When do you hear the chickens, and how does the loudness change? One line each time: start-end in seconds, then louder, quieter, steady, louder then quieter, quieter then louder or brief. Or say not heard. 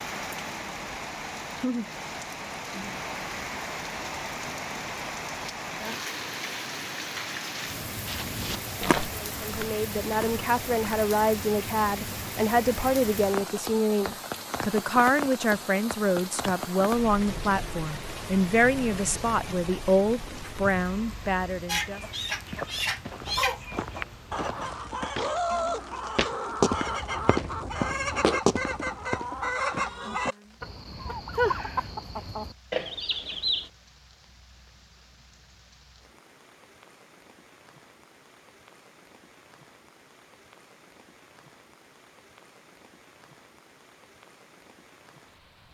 21.6-33.7 steady.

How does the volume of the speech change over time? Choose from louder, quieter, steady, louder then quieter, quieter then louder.
steady.